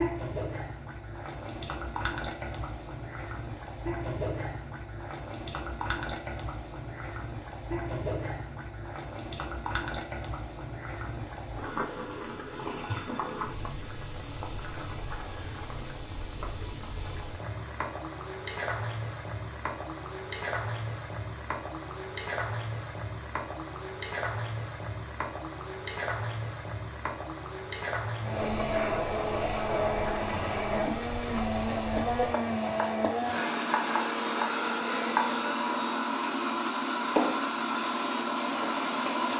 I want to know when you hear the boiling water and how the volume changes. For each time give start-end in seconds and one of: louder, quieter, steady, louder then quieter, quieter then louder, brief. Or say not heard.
0.0-39.3 steady.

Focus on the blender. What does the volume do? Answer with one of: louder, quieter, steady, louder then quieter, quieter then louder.
steady.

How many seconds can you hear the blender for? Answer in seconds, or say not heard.
11 s.